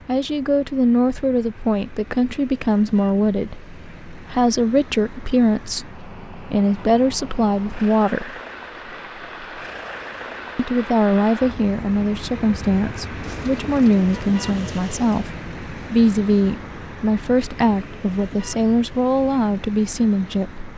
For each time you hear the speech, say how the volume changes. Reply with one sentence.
The speech can be heard from 0.1 to 8.3 s, at a steady volume; and from 10.6 to 20.6 s, at a steady volume.